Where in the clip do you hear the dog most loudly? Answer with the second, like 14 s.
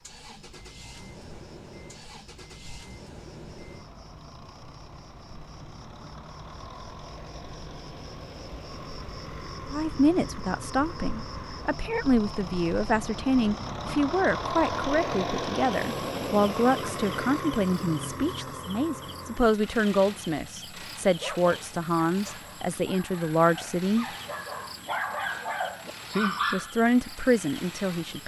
26 s.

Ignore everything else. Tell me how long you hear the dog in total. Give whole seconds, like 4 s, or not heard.
6 s.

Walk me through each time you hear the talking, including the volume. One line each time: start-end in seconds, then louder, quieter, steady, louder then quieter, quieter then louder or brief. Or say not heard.
9.7-24.1 steady
26.5-28.2 brief.